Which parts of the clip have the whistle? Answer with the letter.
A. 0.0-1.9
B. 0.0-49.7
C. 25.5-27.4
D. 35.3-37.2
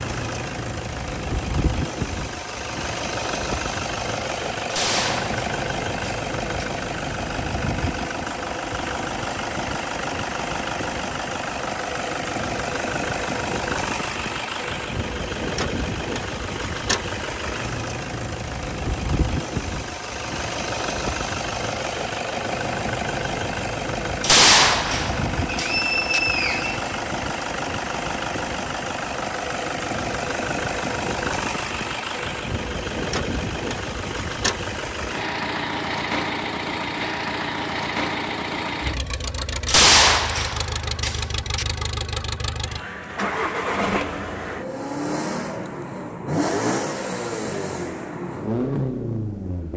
C.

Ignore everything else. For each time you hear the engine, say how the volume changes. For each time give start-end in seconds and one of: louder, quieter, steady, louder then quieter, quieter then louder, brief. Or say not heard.
0.0-49.7 steady.